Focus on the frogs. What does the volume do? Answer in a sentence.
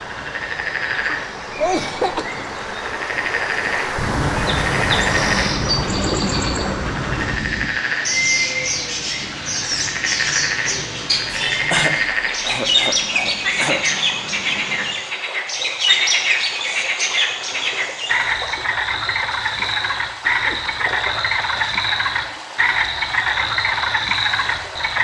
The loudness of the frogs goes up.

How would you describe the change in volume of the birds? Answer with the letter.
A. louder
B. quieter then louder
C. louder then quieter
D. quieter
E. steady
A.